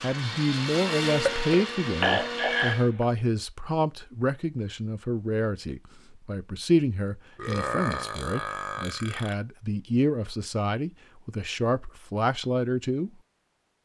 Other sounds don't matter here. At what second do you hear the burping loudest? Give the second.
2 s.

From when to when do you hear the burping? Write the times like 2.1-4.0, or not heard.
1.1-3.0, 7.3-9.3.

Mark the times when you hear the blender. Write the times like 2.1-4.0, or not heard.
0.0-2.9.